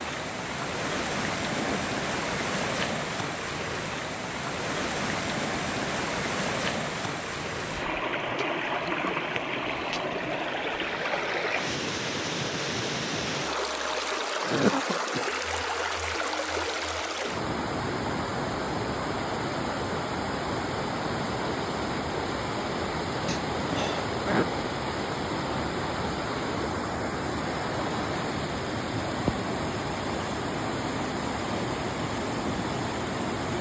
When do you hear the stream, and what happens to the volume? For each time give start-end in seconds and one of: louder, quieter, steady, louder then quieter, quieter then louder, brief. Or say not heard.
0.0-33.5 steady.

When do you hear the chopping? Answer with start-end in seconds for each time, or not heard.
not heard.